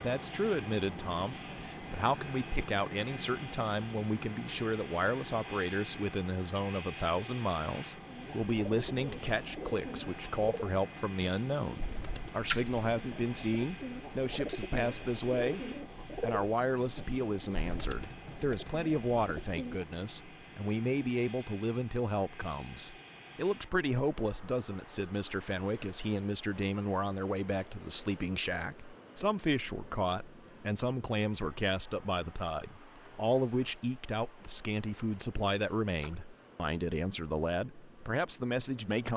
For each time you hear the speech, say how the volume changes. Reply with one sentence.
You can hear the speech from 0.0 to 39.1 s, at a steady volume.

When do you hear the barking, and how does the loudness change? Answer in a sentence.
You can't hear the barking here.